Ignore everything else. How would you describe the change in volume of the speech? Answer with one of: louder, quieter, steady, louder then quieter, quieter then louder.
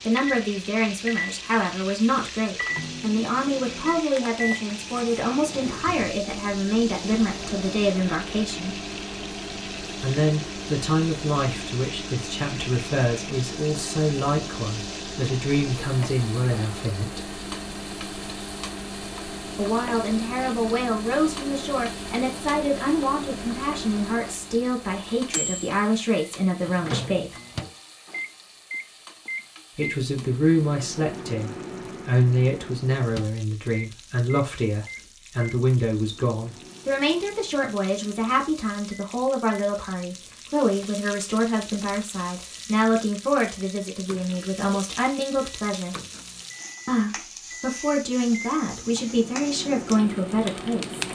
steady.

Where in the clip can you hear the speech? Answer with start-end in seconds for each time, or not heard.
0.1-8.8, 10.0-17.4, 19.6-27.4, 29.7-46.0, 46.9-51.0.